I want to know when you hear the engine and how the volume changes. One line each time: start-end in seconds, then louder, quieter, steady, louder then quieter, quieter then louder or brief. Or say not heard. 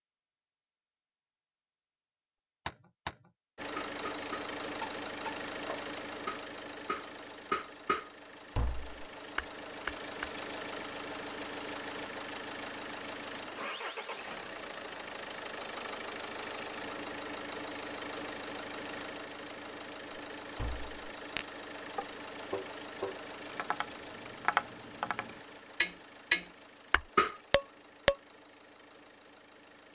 3.5-29.9 quieter.